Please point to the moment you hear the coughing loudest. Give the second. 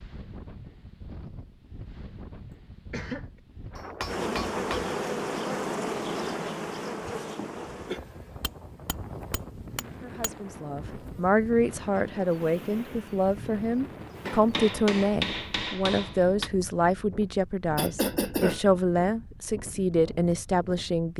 18 s.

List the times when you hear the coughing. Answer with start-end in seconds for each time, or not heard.
2.5-3.2, 7.3-8.0, 17.8-18.6.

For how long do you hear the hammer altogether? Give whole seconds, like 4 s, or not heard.
5 s.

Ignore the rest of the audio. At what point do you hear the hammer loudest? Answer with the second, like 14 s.
15 s.